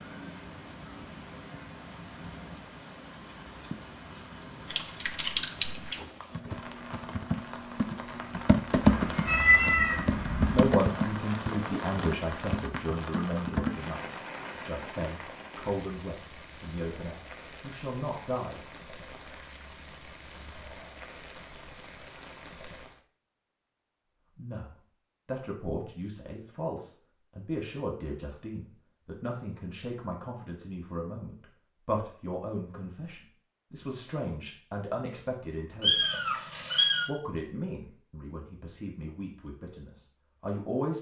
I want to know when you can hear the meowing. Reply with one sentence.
You can hear the meowing from 8.8 to 10.7 s and from 35.8 to 37.0 s.